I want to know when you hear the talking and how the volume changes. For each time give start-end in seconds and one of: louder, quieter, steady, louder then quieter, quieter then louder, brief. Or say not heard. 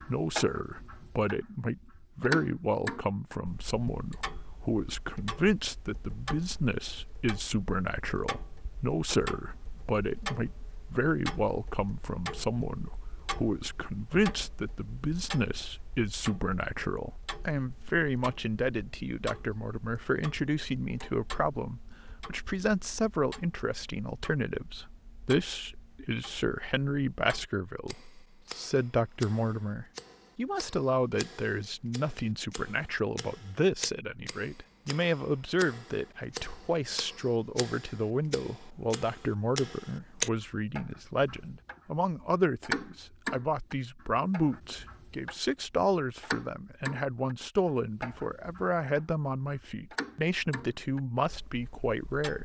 0.1-52.3 steady.